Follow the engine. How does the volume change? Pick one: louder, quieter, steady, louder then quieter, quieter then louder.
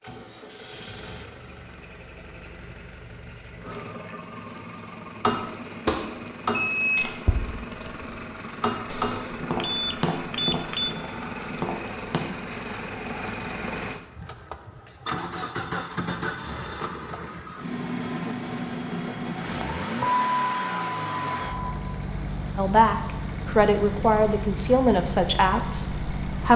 louder.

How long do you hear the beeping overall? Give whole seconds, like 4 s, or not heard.
5 s.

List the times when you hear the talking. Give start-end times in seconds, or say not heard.
22.6-26.5.